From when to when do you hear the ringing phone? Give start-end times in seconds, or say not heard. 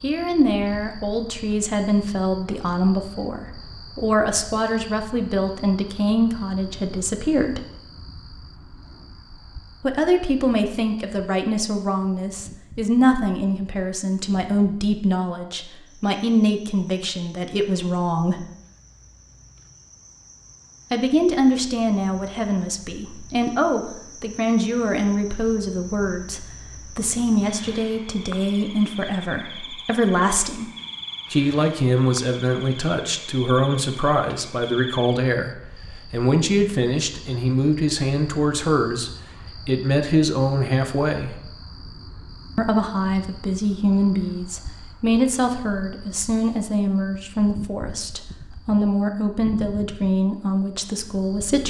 not heard.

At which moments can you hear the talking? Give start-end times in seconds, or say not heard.
0.0-7.6, 9.8-18.4, 20.9-30.6, 31.3-41.4, 42.5-51.6.